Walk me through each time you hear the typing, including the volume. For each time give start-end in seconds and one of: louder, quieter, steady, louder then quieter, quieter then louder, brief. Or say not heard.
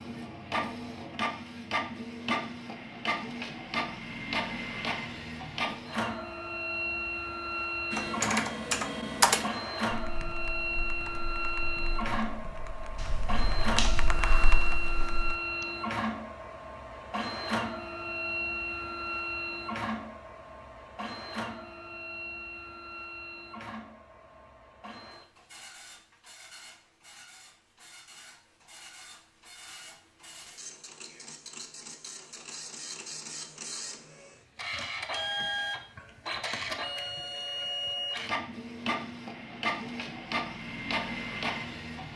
7.9-15.7 quieter then louder.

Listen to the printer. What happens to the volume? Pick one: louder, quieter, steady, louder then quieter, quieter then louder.
quieter then louder.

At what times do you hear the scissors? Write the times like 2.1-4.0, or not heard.
12.9-14.2.